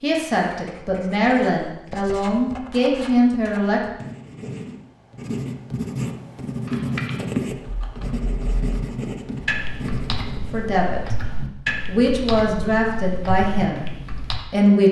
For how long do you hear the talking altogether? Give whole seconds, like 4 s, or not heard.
8 s.